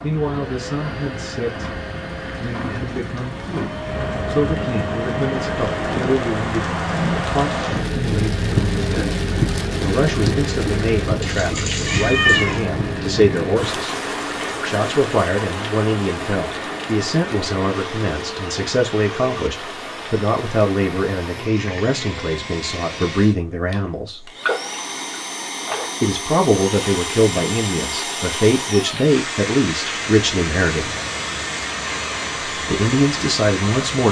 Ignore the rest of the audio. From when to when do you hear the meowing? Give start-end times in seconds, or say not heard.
11.2-12.7.